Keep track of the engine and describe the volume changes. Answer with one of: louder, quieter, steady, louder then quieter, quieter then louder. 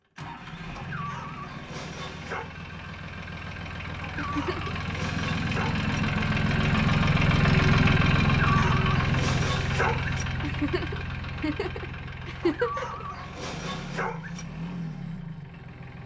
louder then quieter.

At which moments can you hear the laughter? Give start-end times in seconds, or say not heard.
4.2-4.8, 10.4-13.1.